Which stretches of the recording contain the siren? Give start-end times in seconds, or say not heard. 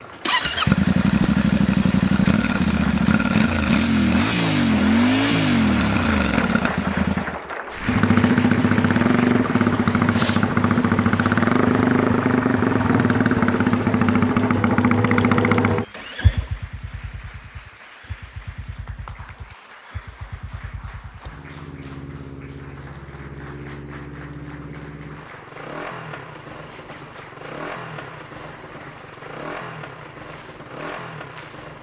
not heard.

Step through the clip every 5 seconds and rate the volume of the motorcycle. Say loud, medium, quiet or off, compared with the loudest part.
loud, loud, loud, medium, quiet, quiet, quiet.